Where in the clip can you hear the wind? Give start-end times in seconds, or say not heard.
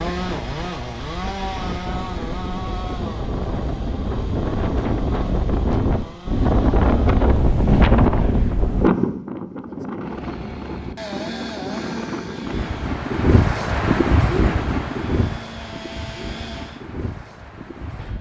0.0-18.1.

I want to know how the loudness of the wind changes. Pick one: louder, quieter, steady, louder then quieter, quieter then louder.
louder then quieter.